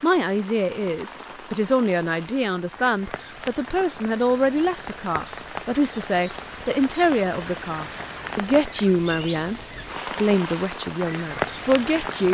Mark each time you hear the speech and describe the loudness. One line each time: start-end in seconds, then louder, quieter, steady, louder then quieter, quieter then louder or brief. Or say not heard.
0.0-12.3 steady.